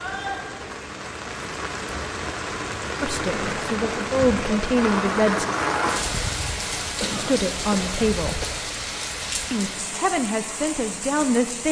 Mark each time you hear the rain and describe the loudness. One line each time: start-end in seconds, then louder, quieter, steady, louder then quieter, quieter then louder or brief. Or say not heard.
0.0-11.6 louder then quieter.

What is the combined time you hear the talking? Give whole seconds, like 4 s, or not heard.
6 s.